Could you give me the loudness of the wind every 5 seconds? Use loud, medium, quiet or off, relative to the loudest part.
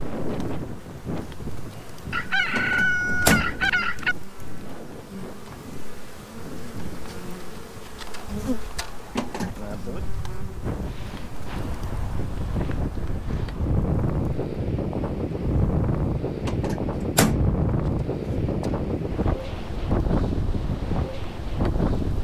medium, quiet, loud, loud, loud.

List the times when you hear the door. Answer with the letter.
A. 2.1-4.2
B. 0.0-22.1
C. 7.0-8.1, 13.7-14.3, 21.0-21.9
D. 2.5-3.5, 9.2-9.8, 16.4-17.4
D.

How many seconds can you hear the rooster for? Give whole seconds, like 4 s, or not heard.
2 s.